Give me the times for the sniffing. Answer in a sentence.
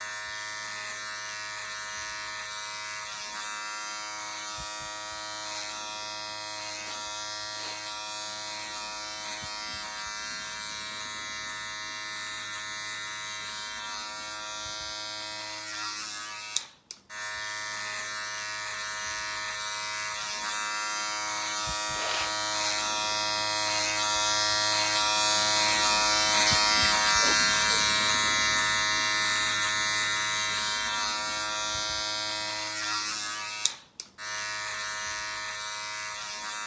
The sniffing can be heard from 6.8 to 7.8 s, from 21.9 to 22.4 s and from 26.4 to 27.8 s.